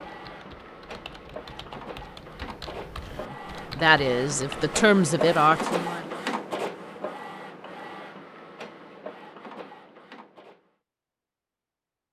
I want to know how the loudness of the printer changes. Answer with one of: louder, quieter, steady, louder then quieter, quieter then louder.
louder then quieter.